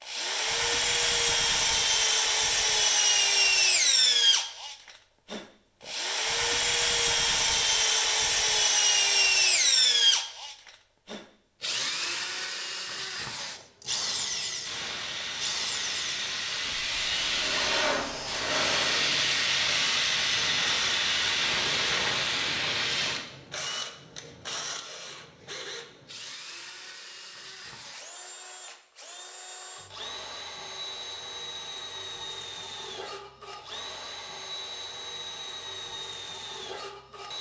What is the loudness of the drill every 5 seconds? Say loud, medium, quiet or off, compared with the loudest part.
loud, loud, medium, quiet, quiet, quiet, quiet, quiet.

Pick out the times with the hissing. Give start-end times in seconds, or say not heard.
14.6-23.2.